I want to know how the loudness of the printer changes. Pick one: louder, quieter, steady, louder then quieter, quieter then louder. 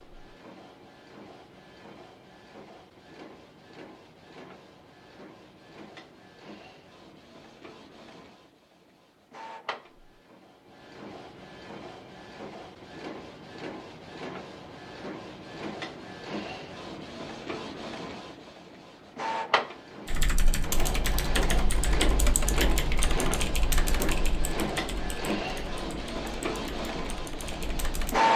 louder.